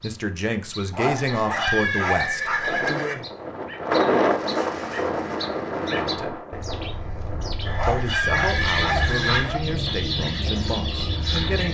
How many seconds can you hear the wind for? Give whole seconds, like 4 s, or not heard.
9 s.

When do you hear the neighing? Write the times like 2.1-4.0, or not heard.
1.2-3.1, 7.7-9.5.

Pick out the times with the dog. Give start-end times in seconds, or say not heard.
0.9-2.8, 7.8-9.6.